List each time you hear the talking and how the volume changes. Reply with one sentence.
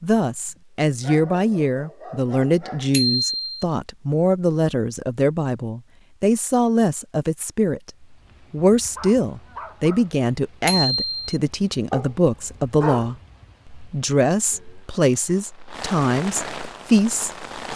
You can hear the talking from 0.0 to 17.7 s, at a steady volume.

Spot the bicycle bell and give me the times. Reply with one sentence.
You can hear the bicycle bell from 2.9 to 3.6 s and from 10.7 to 11.2 s.